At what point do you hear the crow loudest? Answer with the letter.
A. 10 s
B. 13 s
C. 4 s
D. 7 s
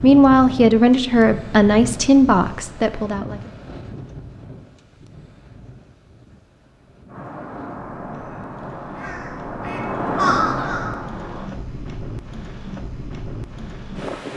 A.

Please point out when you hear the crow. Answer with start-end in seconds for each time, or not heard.
7.0-11.5.